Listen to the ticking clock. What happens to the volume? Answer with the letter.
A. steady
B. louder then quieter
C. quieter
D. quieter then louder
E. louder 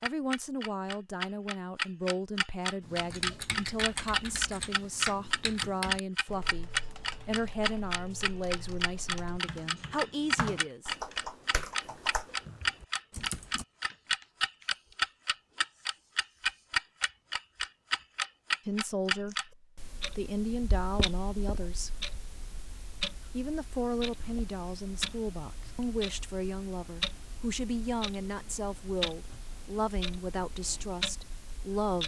C.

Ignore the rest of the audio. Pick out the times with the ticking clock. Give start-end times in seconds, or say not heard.
0.0-32.0.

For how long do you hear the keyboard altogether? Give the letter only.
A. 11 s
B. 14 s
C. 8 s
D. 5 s
A.